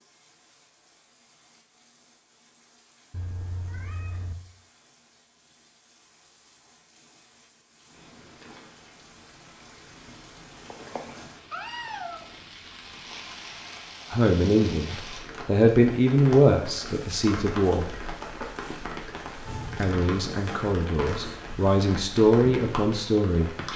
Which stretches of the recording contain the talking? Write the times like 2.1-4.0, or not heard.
14.1-17.9, 19.8-23.5.